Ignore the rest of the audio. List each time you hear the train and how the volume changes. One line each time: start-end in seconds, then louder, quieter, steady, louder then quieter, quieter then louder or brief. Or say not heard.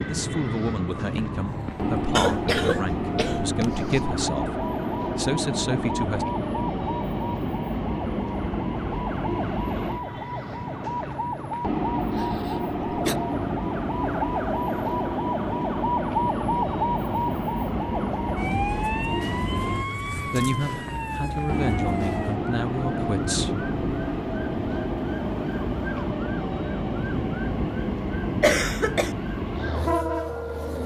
0.0-30.8 steady.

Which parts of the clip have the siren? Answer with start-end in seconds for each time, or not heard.
0.0-30.8.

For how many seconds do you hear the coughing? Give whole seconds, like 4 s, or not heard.
4 s.